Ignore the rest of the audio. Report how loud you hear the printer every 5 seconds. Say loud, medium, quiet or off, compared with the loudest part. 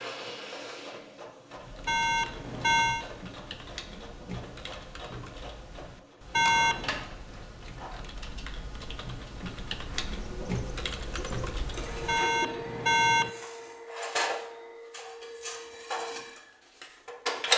quiet, quiet, medium, loud.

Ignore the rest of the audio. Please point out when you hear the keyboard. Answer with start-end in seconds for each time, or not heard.
1.5-12.2.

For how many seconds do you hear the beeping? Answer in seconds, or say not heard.
3 s.